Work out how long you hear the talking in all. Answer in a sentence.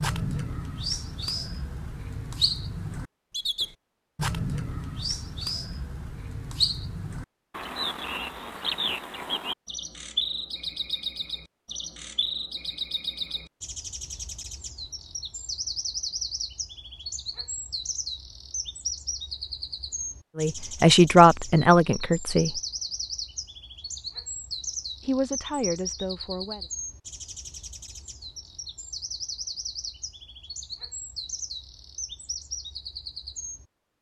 The talking can be heard for 4 seconds in total.